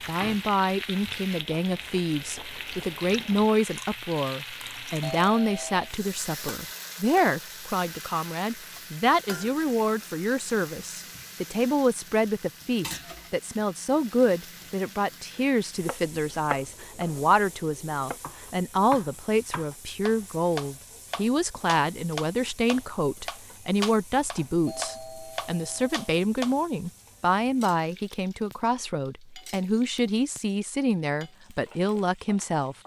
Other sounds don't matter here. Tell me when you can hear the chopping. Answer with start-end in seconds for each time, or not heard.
15.8-26.6.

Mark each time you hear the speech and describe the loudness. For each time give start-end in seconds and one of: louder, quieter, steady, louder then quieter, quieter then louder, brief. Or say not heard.
0.1-32.8 steady.